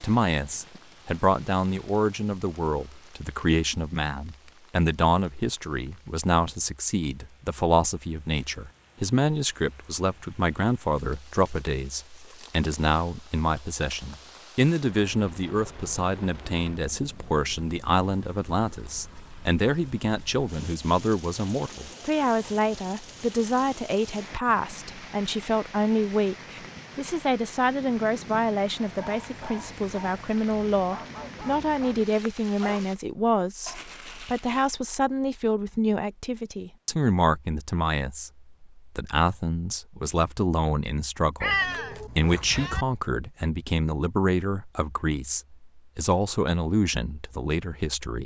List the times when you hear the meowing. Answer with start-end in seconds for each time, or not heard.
41.4-42.9.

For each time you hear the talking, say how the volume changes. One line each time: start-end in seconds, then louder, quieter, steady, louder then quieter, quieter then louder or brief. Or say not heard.
0.0-48.2 steady.